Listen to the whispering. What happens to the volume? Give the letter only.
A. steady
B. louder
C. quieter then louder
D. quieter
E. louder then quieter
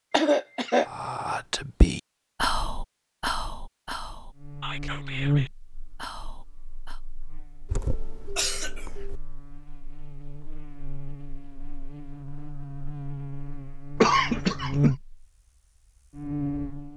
D.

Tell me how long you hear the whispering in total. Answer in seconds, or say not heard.
6 s.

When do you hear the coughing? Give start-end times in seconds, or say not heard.
0.1-0.8, 7.7-9.2, 13.9-14.9.